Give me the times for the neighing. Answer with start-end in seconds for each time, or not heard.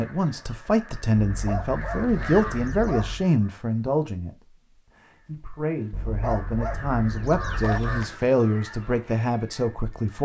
not heard.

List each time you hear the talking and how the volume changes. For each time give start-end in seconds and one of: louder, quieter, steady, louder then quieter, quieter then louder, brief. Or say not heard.
0.0-10.2 quieter then louder.